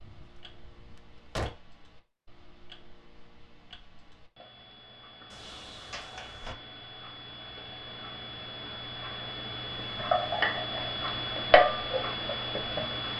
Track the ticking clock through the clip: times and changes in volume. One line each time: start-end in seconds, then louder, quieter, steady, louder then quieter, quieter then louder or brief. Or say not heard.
0.0-13.1 louder.